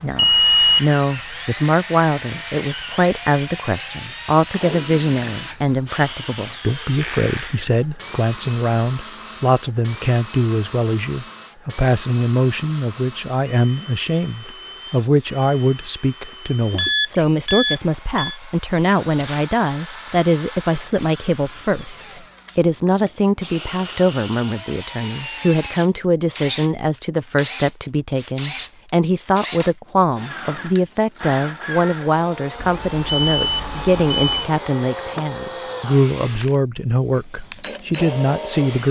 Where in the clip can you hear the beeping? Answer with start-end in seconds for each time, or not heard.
0.1-0.8, 16.7-18.4, 32.5-34.5.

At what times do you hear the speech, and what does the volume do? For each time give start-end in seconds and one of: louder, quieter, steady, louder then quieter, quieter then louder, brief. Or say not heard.
0.0-38.8 steady.